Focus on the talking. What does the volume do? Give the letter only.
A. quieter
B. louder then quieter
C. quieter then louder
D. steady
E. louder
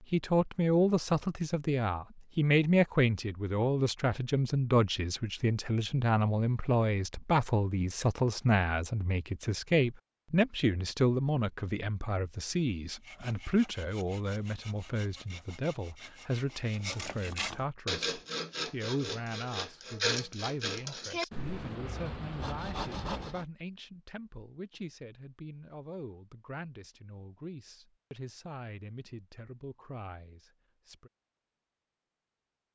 A.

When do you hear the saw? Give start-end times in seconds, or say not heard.
12.8-23.4.